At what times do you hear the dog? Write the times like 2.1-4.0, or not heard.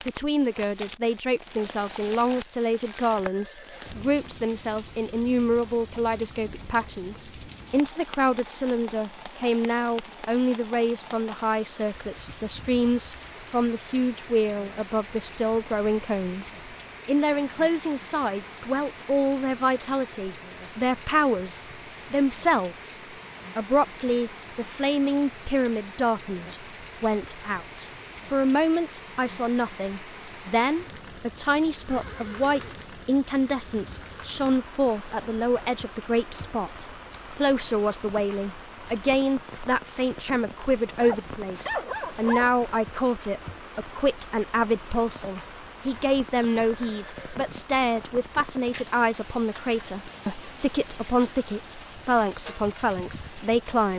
40.5-42.5.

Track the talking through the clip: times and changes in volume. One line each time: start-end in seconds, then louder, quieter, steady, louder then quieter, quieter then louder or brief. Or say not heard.
0.1-53.9 steady.